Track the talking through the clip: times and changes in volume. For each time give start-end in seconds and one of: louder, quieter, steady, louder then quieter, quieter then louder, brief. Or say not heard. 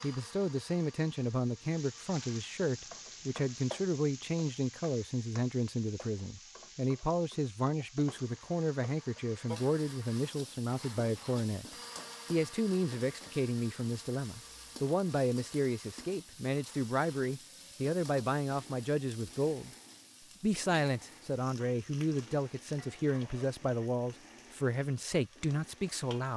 0.0-19.7 steady
20.4-26.3 steady.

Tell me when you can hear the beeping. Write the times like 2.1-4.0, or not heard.
not heard.